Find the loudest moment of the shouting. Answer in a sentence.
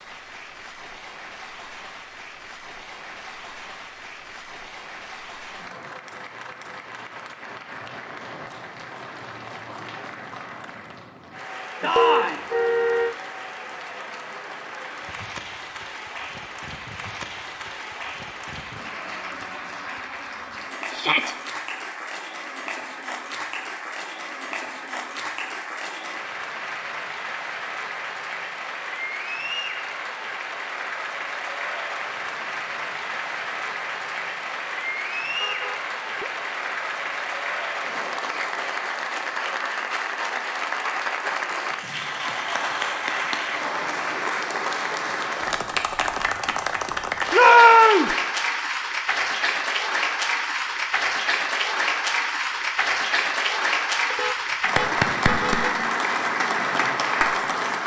The volume of the shouting peaks at 48 seconds.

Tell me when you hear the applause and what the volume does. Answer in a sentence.
You can hear the applause from 0.0 to 57.8 s, getting louder.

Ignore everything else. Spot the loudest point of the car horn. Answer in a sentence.
The volume of the car horn peaks at 12 seconds.